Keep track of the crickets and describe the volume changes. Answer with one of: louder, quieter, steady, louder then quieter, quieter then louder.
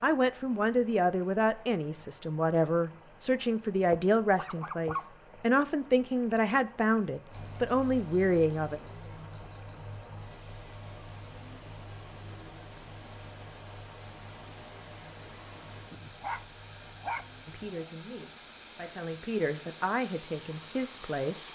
quieter.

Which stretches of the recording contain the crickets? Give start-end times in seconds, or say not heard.
7.3-21.5.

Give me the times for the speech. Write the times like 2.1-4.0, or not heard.
0.0-8.8, 17.4-21.5.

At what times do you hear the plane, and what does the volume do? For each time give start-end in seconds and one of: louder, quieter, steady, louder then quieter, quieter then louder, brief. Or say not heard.
not heard.